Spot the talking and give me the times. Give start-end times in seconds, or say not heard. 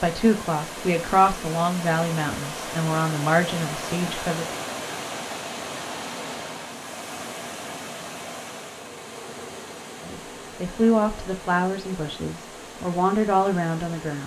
0.0-4.5, 10.0-14.2.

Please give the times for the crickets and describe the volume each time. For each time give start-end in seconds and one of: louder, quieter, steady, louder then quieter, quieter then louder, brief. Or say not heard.
not heard.